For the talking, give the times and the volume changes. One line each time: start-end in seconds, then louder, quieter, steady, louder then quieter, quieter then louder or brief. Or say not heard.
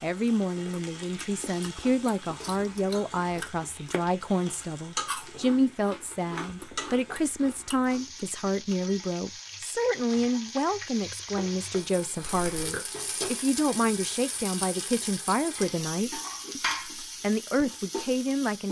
0.0-18.6 steady.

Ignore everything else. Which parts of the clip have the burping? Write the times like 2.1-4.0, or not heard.
12.2-12.8.